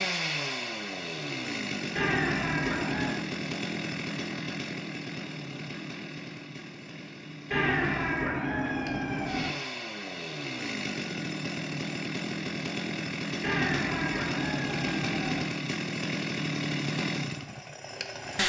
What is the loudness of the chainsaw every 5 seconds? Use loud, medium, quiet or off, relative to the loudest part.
loud, medium, loud, loud.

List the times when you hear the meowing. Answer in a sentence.
You can hear the meowing from 1.9 to 3.2 s, from 7.5 to 9.5 s and from 13.4 to 15.4 s.